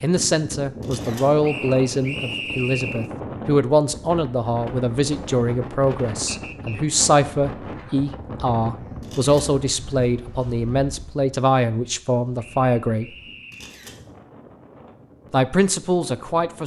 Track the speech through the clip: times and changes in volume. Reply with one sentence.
The speech can be heard from 0.0 to 13.1 s, at a steady volume; and briefly from 15.3 to 16.6 s.